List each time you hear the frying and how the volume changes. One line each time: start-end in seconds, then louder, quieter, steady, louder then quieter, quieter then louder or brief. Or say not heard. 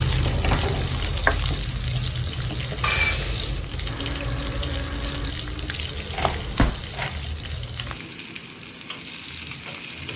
0.0-10.1 quieter.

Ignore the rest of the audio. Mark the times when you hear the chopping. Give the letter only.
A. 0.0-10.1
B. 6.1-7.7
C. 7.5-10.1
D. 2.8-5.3
B.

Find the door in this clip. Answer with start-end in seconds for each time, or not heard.
0.1-1.4, 6.2-6.8.